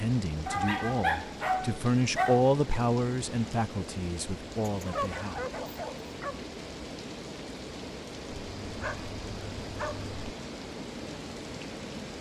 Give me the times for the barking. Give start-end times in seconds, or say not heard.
0.5-2.5, 4.6-6.5, 8.4-10.3.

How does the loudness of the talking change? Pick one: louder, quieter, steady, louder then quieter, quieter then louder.
louder then quieter.